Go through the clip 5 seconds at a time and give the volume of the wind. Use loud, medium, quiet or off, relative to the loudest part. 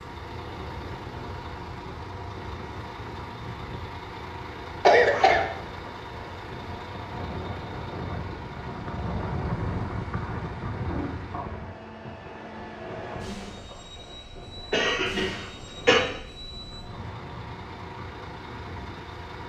medium, loud, loud, medium.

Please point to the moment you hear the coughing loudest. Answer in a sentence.
The volume of the coughing peaks at 5 seconds.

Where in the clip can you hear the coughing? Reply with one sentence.
The coughing can be heard from 4.8 to 5.5 s and from 14.7 to 16.0 s.